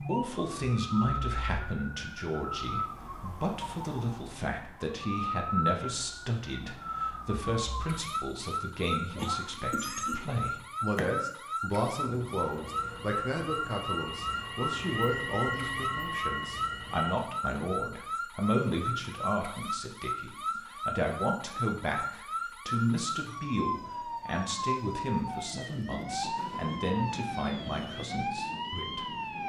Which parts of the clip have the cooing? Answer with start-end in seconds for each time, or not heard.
not heard.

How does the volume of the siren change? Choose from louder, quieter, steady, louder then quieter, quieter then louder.
steady.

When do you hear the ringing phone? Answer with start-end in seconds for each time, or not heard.
not heard.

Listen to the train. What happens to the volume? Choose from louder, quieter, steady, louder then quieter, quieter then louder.
louder.